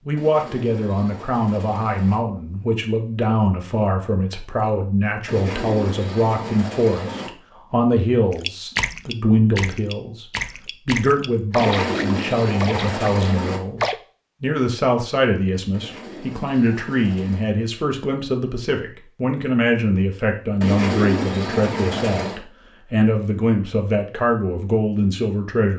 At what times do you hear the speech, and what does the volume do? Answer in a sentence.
You can hear the speech from 0.1 to 25.7 s, at a steady volume.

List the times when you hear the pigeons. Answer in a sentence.
The pigeons can be heard from 0.1 to 2.2 s, from 5.2 to 7.3 s, from 11.6 to 13.6 s, from 15.7 to 17.4 s and from 20.6 to 22.4 s.